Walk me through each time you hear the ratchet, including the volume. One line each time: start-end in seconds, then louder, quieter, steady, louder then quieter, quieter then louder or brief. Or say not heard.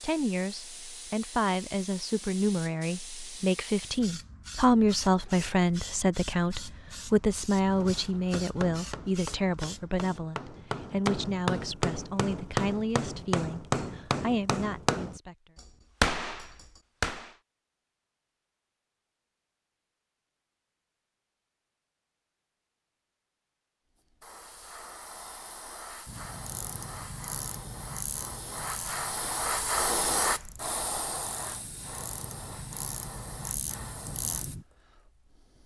26.1-34.6 quieter then louder.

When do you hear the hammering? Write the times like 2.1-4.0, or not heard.
7.7-17.3.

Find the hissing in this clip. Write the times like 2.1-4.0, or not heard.
0.0-10.2, 24.1-35.6.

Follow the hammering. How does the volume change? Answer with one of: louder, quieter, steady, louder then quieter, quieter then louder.
louder.